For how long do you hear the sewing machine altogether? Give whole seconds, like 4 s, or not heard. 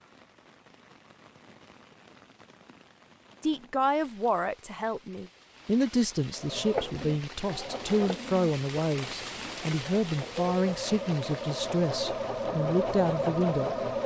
8 s.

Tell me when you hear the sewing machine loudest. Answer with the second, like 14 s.
14 s.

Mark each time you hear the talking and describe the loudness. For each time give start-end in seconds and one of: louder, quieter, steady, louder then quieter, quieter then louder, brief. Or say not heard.
3.4-13.8 steady.